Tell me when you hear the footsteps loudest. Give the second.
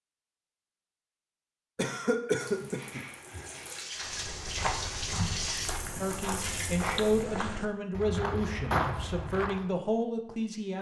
9 s.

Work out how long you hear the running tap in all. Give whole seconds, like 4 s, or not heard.
5 s.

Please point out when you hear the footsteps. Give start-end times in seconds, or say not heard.
4.0-9.7.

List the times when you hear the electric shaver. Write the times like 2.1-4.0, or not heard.
not heard.